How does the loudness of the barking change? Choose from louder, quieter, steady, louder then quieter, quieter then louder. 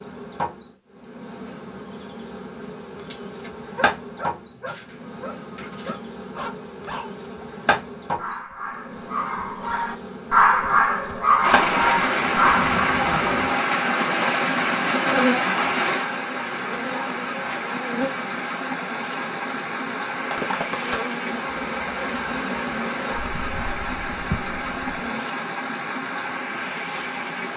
louder.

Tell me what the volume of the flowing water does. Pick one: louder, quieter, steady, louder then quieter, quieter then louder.
quieter.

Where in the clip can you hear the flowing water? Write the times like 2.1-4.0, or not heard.
11.4-27.5.